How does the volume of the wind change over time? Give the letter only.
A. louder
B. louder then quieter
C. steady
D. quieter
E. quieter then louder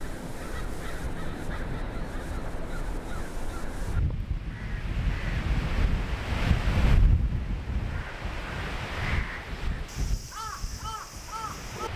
B.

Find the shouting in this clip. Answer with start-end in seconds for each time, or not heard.
not heard.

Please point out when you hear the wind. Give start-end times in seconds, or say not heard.
0.0-11.9.